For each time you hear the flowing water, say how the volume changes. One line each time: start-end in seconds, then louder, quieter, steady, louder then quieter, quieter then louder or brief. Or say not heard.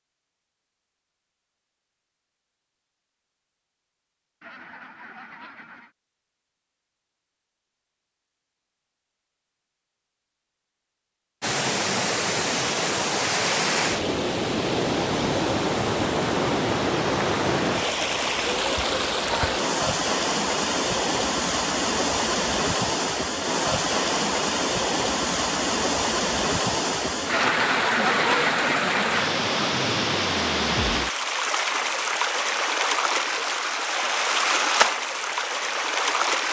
11.4-36.4 steady.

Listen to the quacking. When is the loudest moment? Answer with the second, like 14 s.
28 s.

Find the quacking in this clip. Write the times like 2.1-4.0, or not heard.
4.4-6.0, 27.2-29.3.